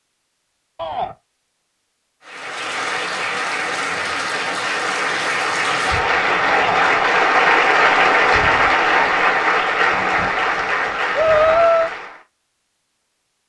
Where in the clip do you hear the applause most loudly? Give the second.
8 s.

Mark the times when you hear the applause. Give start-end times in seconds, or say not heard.
2.2-12.2.